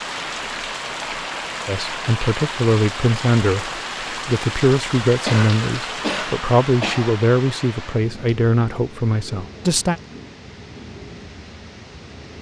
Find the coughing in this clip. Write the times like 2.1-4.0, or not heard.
5.2-7.2.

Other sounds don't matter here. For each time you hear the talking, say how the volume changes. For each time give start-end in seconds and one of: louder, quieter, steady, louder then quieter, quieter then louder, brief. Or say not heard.
1.6-10.0 steady.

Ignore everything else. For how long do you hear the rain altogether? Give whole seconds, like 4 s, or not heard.
12 s.